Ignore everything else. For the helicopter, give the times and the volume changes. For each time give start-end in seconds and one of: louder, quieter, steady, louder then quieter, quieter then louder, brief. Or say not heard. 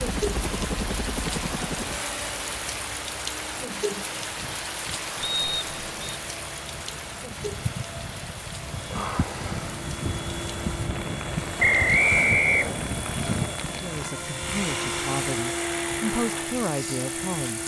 0.0-17.6 quieter then louder.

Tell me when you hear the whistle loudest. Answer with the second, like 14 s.
12 s.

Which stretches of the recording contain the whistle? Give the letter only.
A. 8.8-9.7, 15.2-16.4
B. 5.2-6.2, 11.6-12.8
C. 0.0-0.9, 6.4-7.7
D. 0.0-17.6
B.